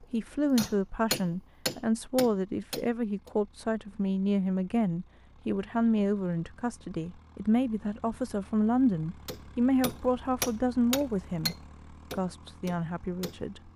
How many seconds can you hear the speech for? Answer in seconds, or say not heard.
14 s.